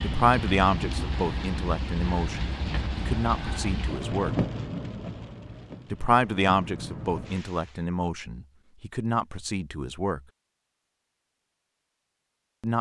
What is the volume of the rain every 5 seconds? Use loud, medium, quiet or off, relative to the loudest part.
loud, medium, off.